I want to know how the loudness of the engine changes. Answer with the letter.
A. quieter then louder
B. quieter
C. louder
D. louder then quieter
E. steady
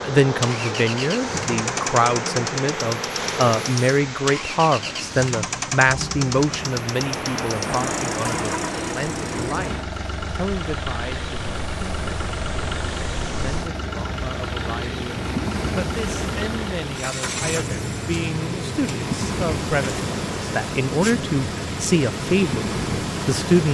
E.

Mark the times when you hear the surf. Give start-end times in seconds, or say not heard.
0.0-23.6.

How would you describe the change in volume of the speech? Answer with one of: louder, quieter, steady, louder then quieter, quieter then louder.
quieter then louder.